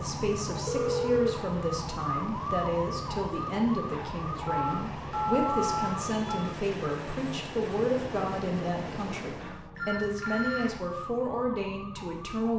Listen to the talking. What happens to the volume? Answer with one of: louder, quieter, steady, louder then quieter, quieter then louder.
steady.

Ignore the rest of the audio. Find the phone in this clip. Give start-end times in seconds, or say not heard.
0.7-1.4, 4.5-6.5, 9.8-10.8.